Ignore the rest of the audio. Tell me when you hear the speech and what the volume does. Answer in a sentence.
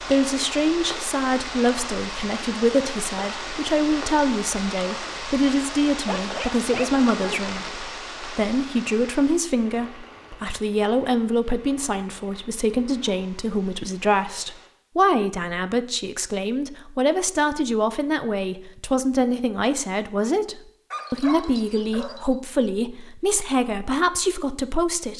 You can hear the speech from 0.1 to 25.1 s, at a steady volume.